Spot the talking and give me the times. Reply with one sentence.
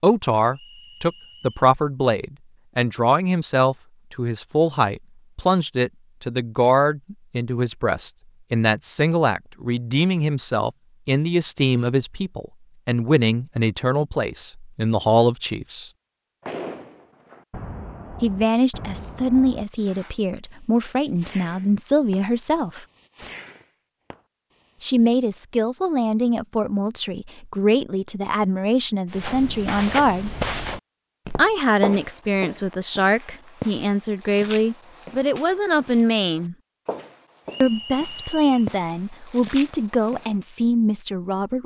The talking can be heard from 0.0 to 15.9 s, from 18.2 to 22.9 s, from 24.8 to 30.3 s, from 31.4 to 36.5 s and from 37.6 to 41.6 s.